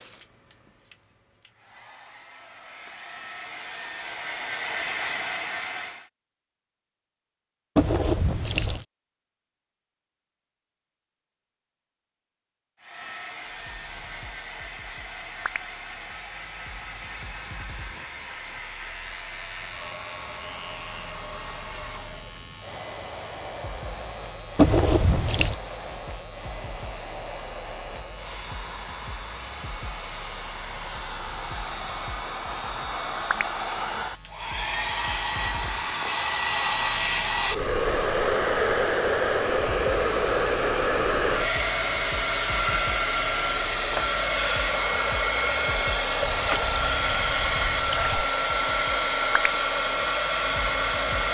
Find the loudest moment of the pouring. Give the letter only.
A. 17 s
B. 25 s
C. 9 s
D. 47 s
B.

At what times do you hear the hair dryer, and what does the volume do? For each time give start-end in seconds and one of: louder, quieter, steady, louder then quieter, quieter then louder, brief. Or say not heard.
0.0-6.1 louder
12.8-51.2 louder.